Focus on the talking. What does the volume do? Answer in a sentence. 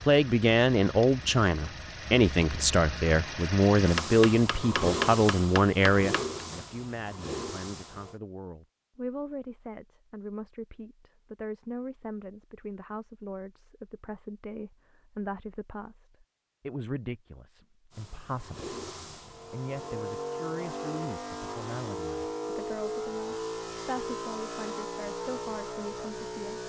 The loudness of the talking goes down.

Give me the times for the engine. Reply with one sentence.
The engine can be heard from 0.0 to 8.2 s and from 17.9 to 26.6 s.